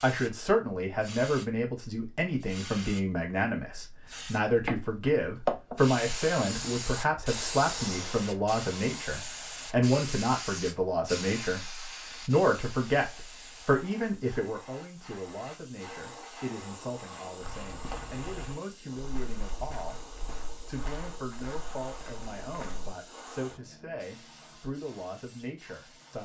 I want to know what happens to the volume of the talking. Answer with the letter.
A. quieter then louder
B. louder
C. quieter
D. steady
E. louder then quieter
C.